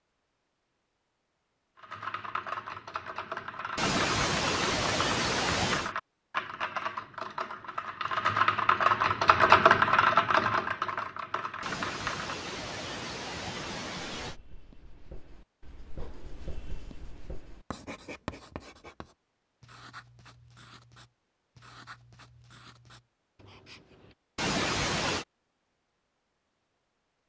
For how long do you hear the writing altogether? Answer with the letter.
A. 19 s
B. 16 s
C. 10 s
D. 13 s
C.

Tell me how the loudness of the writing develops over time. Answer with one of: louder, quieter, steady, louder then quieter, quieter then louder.
louder then quieter.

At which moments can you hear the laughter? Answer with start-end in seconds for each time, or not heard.
3.8-6.0, 11.6-14.4, 24.4-25.2.